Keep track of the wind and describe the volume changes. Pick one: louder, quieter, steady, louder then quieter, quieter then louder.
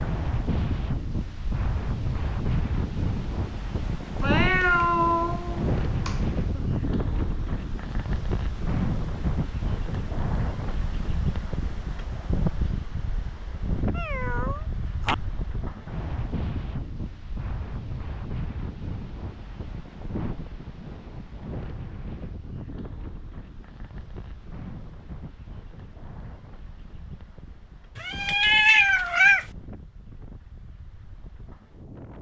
quieter.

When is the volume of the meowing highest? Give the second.
29 s.